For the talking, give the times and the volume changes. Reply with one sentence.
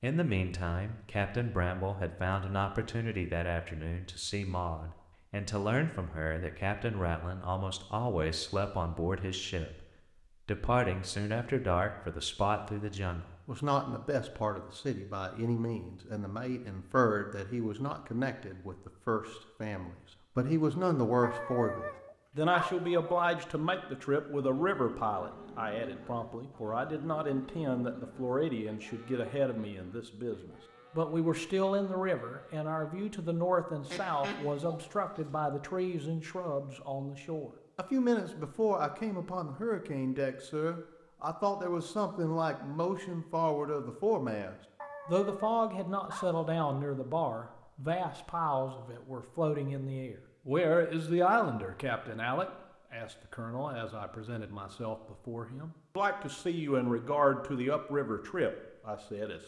You can hear the talking from 0.0 to 9.8 s, at a steady volume; and from 10.4 to 59.4 s, at a steady volume.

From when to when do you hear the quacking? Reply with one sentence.
You can hear the quacking from 33.8 to 35.4 s.